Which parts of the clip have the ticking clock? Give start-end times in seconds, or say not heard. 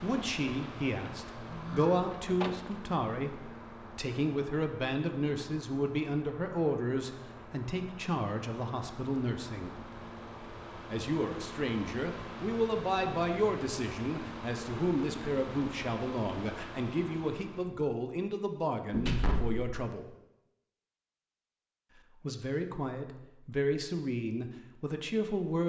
not heard.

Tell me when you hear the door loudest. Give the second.
19 s.